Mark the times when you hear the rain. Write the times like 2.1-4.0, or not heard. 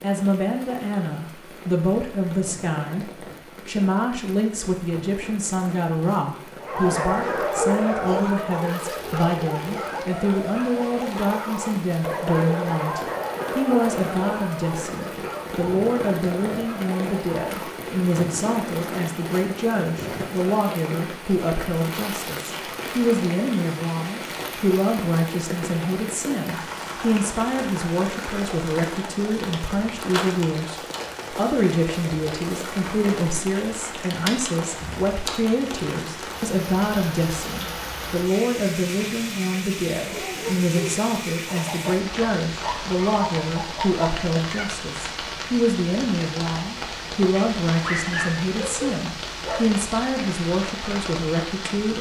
0.0-51.9.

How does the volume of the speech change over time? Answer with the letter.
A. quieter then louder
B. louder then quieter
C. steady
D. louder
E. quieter
C.